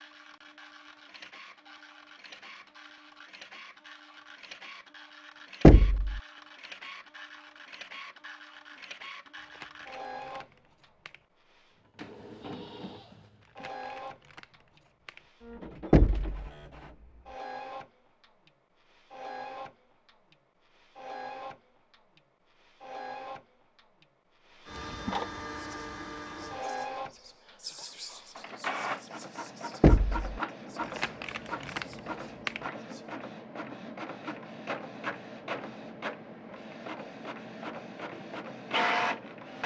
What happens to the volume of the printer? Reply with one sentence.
The volume of the printer goes up.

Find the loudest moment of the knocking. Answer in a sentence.
The volume of the knocking peaks at 6 seconds.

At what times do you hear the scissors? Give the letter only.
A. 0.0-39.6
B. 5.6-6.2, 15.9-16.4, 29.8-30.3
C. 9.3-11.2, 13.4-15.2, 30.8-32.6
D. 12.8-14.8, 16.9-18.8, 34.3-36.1
C.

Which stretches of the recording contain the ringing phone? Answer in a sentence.
You can't hear the ringing phone here.